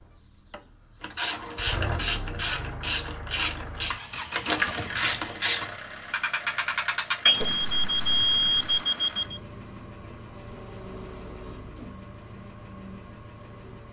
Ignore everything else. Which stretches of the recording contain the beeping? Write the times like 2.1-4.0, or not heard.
7.2-9.4.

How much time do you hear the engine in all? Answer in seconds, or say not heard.
14 s.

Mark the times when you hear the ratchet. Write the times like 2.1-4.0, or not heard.
1.0-8.8.